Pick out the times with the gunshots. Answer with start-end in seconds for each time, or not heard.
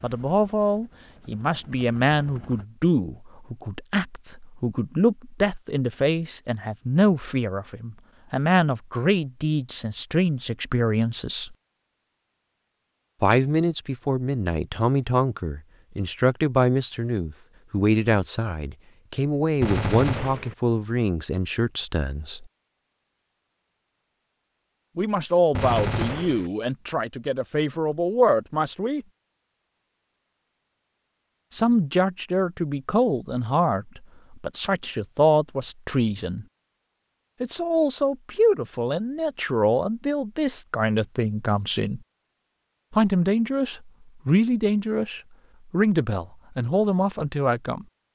19.6-20.6, 25.5-26.5.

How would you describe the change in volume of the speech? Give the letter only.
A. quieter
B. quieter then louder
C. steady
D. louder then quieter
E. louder
C.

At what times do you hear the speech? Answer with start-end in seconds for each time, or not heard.
0.0-11.6, 13.2-22.4, 24.9-29.1, 31.5-36.5, 37.4-42.0, 42.9-47.9.